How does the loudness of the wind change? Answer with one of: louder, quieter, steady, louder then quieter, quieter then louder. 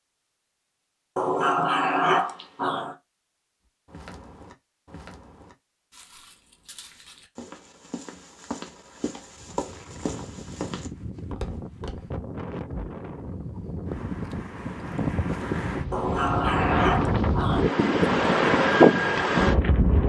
louder.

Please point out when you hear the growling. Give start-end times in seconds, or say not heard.
1.1-3.0, 15.9-17.6.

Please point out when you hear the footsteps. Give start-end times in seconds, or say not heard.
3.9-12.1.